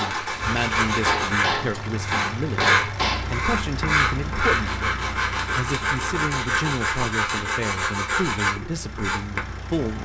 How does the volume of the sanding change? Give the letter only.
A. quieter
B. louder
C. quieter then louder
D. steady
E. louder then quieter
D.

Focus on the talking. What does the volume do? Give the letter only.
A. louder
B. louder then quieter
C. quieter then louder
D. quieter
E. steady
E.